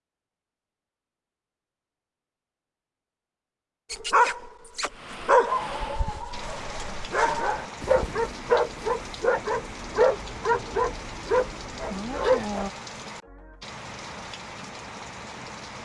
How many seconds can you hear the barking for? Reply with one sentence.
You can hear the barking for 9 seconds altogether.